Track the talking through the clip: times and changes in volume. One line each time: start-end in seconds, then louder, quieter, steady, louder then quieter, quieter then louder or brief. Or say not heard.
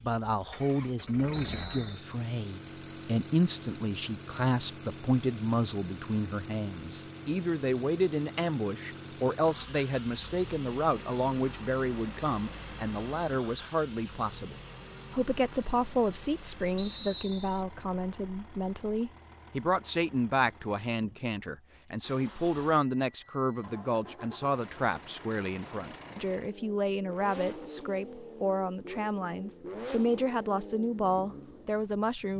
0.0-32.3 steady.